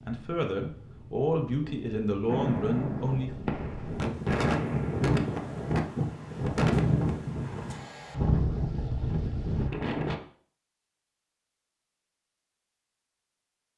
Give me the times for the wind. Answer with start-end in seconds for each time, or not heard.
0.0-10.2.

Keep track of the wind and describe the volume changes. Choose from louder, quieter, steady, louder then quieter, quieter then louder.
louder.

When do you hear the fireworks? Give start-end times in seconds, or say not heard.
2.3-5.8.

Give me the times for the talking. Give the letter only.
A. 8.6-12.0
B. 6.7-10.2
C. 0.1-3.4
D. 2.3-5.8
C.